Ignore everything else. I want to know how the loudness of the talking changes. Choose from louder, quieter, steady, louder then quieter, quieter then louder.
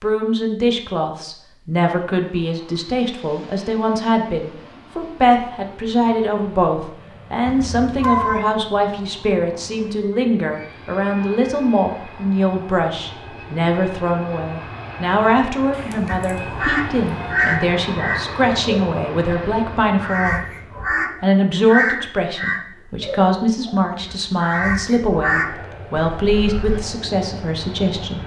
steady.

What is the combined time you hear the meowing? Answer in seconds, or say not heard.
3 s.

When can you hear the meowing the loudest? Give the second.
8 s.